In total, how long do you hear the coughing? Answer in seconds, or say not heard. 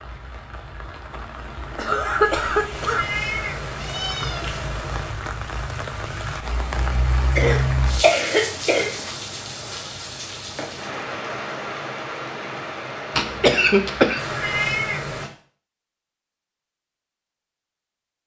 4 s.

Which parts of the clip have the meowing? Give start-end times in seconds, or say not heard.
2.7-5.2, 14.2-15.3.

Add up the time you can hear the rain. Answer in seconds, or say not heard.
15 s.